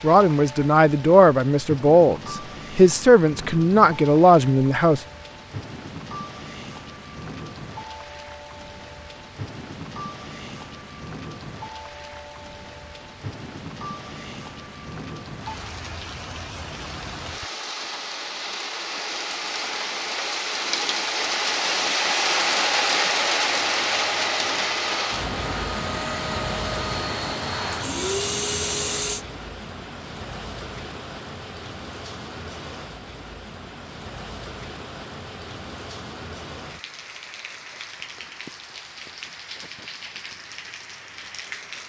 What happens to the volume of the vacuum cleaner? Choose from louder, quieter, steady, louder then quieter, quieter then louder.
louder.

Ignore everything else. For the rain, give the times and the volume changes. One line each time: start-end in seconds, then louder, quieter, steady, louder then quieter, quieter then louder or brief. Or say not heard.
0.0-41.8 louder then quieter.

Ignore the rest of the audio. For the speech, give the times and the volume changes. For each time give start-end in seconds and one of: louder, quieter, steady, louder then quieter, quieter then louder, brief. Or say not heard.
0.0-5.0 steady.